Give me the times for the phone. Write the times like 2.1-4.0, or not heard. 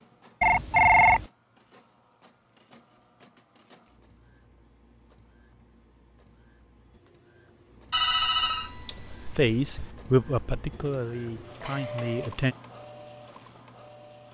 0.4-1.2, 7.9-9.9.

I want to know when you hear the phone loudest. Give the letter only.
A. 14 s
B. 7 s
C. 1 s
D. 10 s
C.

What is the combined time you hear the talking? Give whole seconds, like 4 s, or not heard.
3 s.